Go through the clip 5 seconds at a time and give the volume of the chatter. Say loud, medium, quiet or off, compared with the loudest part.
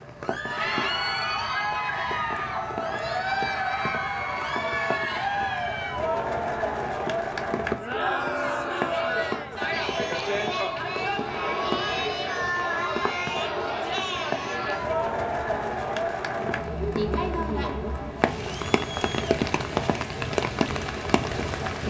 loud, loud, loud, loud, medium.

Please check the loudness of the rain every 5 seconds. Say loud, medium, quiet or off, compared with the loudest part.
medium, medium, medium, loud, loud.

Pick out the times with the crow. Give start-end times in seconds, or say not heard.
not heard.